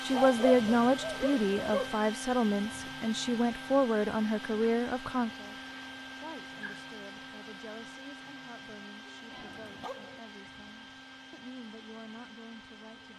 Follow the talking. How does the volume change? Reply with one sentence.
The volume of the talking goes down.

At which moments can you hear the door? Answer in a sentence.
You can't hear the door here.